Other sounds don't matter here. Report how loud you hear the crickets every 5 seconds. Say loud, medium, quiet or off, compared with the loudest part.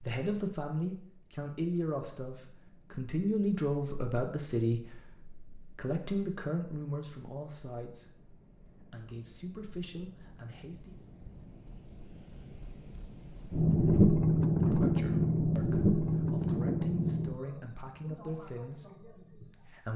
quiet, quiet, loud, medium.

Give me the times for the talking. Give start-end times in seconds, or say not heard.
0.0-10.9, 14.6-19.9.